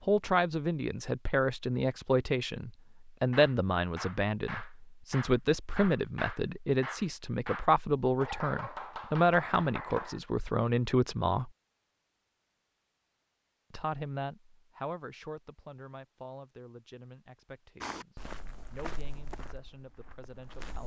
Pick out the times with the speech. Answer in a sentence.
The speech can be heard from 0.0 to 11.5 s and from 13.7 to 20.8 s.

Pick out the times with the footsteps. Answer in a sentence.
You can hear the footsteps from 17.8 to 20.8 s.